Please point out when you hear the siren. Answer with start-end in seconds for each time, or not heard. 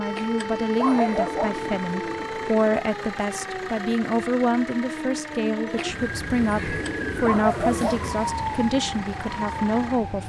0.0-10.2.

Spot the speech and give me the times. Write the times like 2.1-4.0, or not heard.
0.0-10.2.